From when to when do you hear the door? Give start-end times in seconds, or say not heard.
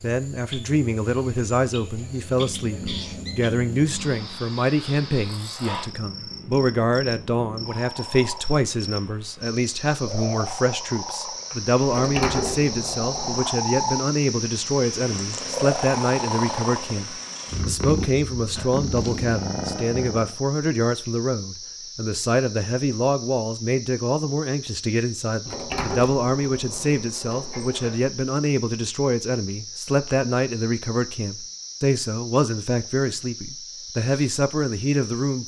11.9-13.5, 25.4-27.9.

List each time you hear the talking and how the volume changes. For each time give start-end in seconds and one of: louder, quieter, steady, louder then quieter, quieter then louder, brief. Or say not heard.
0.0-35.4 steady.